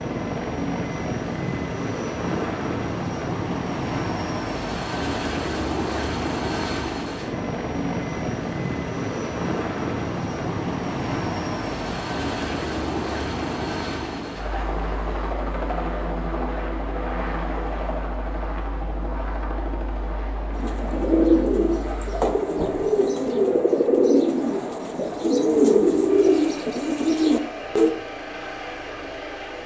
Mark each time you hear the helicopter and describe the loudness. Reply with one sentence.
You can hear the helicopter from 0.0 to 29.6 s, getting quieter.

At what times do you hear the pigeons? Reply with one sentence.
The pigeons can be heard from 20.5 to 27.9 s.